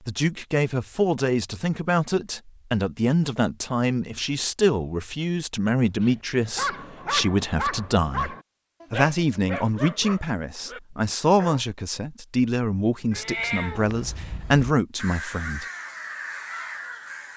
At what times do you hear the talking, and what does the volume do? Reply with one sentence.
The talking can be heard from 0.1 to 15.7 s, at a steady volume.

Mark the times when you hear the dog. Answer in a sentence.
The dog can be heard from 6.0 to 11.7 s.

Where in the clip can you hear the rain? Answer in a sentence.
You can't hear the rain here.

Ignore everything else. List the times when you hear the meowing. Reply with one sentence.
The meowing can be heard from 13.1 to 14.2 s.